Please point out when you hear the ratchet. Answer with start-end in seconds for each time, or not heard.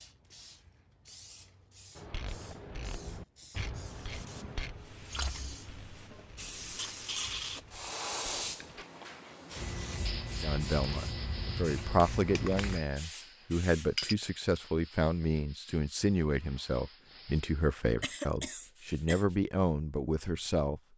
1.9-8.8.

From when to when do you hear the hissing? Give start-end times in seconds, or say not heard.
0.0-14.2.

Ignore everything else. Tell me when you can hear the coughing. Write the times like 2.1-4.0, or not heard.
18.0-19.2.